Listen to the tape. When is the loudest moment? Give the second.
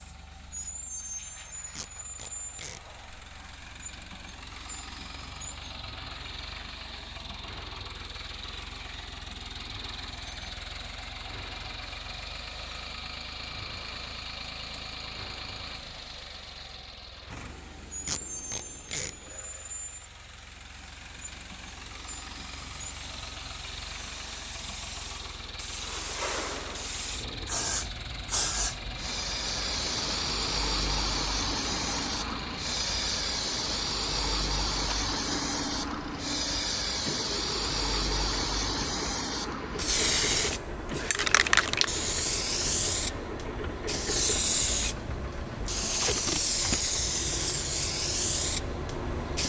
46 s.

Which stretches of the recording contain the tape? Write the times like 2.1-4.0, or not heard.
1.8-2.8, 18.1-19.1, 45.9-46.6.